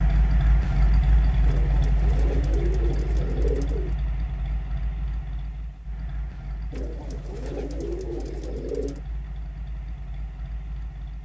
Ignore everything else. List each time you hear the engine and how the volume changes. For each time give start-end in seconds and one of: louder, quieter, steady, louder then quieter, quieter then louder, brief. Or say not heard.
0.0-11.2 quieter.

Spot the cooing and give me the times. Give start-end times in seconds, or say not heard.
1.4-4.0, 6.7-9.0.